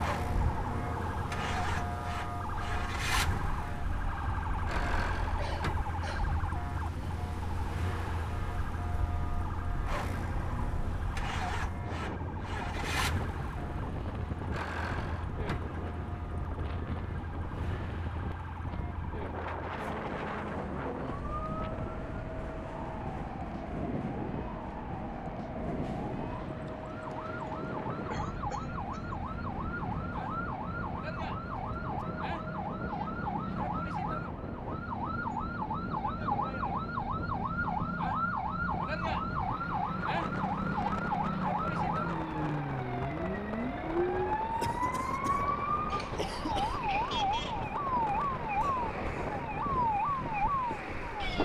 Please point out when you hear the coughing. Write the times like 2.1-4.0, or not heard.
5.3-6.4, 28.1-29.2, 44.6-47.0.